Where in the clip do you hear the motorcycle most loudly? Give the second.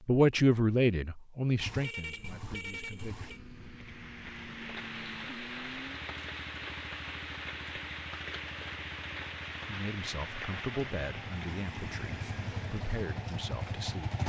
14 s.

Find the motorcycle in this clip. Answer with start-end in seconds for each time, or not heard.
2.0-14.2.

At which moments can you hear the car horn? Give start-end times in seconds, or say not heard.
1.6-3.4.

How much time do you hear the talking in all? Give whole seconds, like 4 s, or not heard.
8 s.